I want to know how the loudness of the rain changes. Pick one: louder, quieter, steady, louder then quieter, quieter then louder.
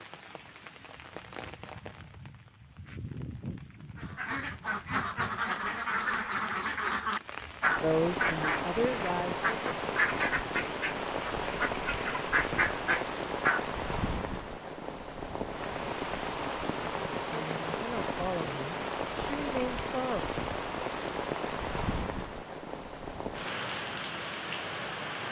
louder.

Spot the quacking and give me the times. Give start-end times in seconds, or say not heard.
4.0-13.7.